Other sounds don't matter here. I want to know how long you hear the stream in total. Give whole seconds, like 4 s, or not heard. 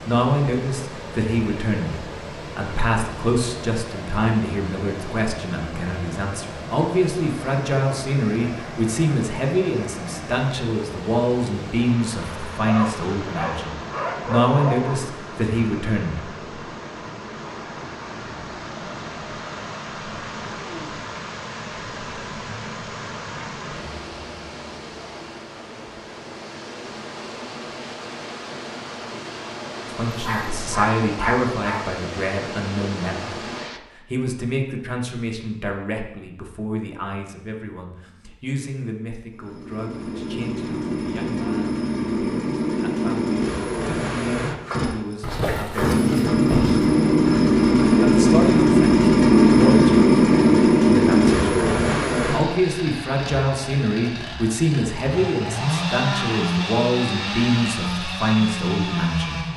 34 s.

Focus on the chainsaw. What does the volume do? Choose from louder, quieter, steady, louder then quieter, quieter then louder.
louder then quieter.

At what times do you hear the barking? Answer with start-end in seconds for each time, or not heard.
12.7-15.0, 30.1-31.9, 45.2-46.8.